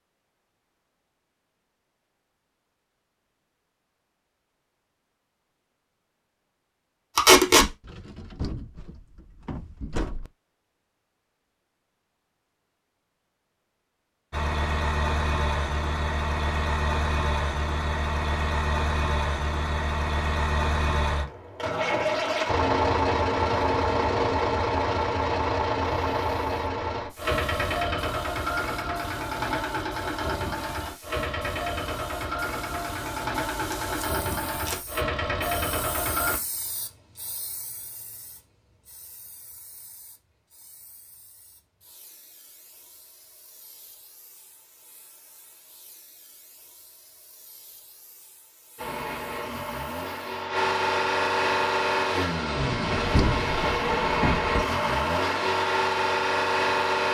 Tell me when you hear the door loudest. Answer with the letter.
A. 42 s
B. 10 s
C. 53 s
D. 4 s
C.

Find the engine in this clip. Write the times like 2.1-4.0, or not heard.
14.3-36.4, 48.8-57.1.